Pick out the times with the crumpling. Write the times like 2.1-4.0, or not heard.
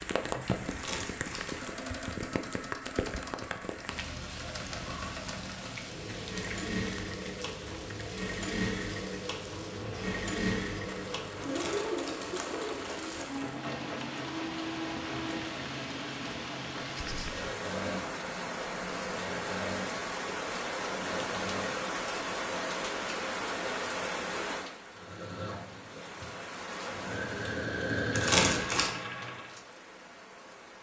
0.7-1.7, 11.4-13.2, 28.1-28.9.